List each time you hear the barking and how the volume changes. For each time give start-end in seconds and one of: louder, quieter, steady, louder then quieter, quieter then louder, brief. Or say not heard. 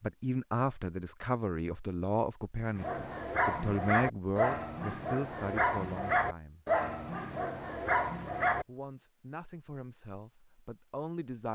2.8-8.7 steady.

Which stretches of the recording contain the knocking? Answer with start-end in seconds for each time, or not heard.
not heard.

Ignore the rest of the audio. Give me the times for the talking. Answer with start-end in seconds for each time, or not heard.
0.0-6.7, 8.6-11.4.